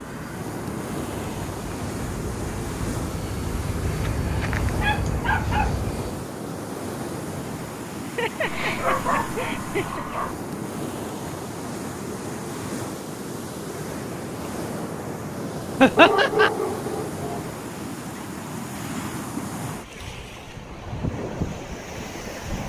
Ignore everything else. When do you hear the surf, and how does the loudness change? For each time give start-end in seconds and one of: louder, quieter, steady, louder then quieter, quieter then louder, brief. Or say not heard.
0.0-22.6 steady.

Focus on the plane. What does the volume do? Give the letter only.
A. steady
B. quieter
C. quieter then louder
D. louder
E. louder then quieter
D.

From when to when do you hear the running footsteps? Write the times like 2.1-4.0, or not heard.
not heard.